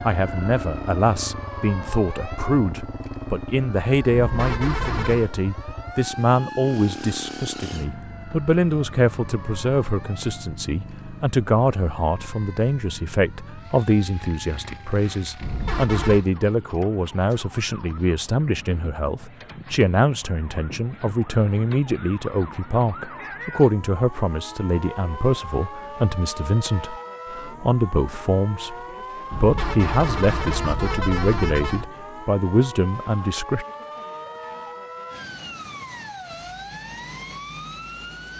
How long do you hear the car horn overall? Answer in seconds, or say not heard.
5 s.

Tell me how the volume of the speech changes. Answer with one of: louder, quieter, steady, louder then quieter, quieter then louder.
steady.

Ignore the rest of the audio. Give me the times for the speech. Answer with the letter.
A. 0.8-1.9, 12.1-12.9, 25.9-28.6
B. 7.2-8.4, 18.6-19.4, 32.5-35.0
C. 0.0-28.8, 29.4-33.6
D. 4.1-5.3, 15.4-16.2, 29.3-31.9
C.